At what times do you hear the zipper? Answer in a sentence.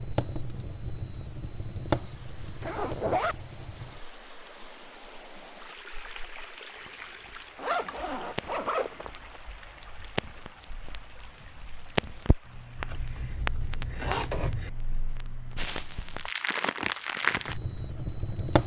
The zipper can be heard from 2.6 to 3.4 s, from 7.5 to 9.4 s and from 12.8 to 14.7 s.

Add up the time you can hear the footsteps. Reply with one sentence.
You can't hear the footsteps here.